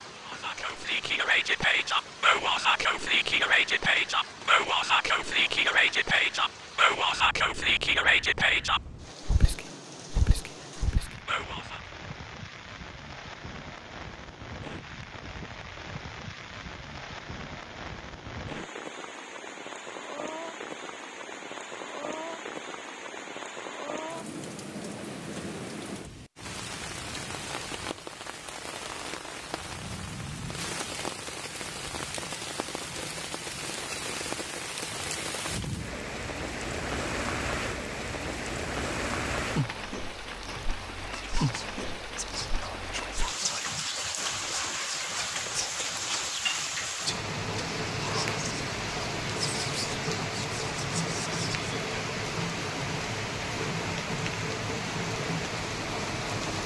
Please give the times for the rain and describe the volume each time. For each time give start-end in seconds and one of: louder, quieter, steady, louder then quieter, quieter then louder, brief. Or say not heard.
0.0-56.6 louder.